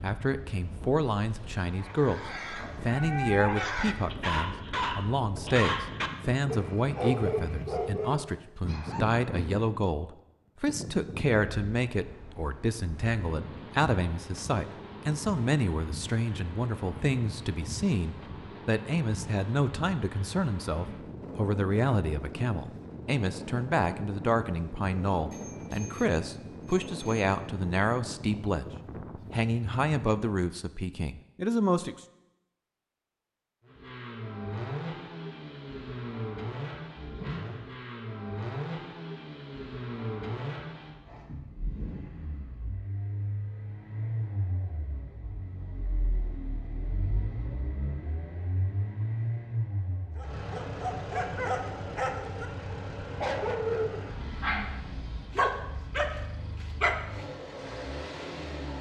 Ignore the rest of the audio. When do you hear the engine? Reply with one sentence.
The engine can be heard from 33.6 to 58.7 s.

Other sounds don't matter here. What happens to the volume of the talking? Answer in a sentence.
The volume of the talking stays about the same.